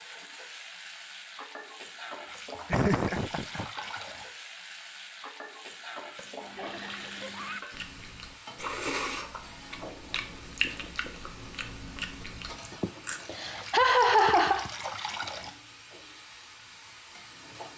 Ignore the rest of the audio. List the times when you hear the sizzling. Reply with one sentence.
The sizzling can be heard from 0.0 to 17.7 s.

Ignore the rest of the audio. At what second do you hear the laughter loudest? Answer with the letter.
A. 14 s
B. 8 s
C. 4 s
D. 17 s
A.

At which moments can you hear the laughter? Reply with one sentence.
The laughter can be heard from 2.7 to 3.6 s, from 6.5 to 7.7 s and from 12.7 to 14.7 s.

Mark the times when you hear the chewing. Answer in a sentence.
The chewing can be heard from 7.7 to 13.2 s.